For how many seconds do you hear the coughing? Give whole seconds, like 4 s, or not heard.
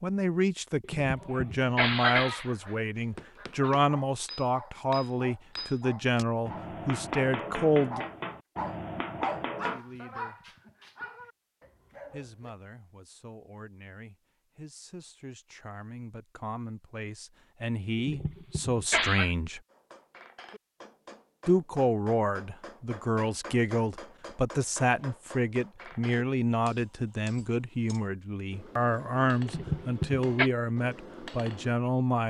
4 s.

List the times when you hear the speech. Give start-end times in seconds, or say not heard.
0.0-8.1, 9.6-10.6, 12.1-19.6, 21.4-32.2.